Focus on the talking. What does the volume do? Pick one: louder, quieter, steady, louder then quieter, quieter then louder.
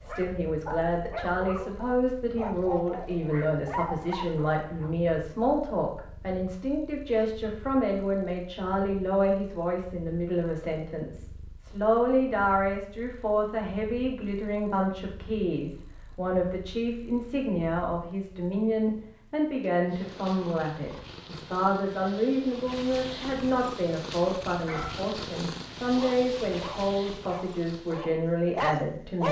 steady.